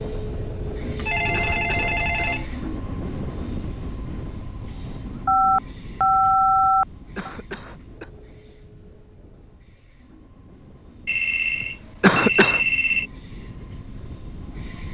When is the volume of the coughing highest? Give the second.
12 s.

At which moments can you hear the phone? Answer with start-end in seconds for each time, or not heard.
0.8-2.5, 5.2-7.3, 11.1-13.1.